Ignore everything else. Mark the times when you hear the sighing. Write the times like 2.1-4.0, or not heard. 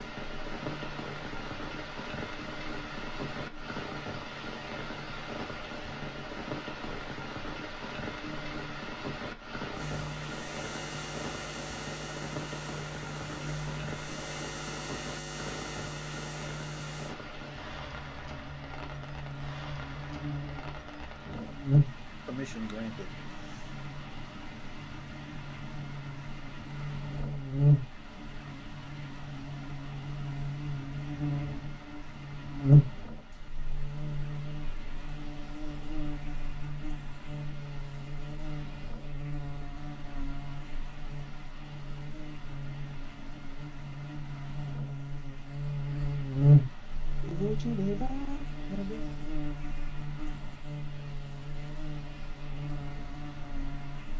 22.2-23.7, 47.2-49.0.